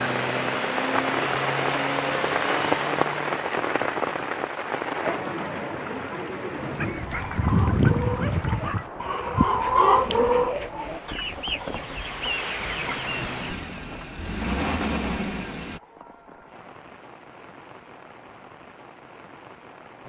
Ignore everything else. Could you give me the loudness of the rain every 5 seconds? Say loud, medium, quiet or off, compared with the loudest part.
loud, medium, quiet, quiet.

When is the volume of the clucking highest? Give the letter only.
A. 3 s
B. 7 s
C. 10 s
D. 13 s
C.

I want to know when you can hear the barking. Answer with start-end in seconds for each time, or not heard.
6.8-8.8.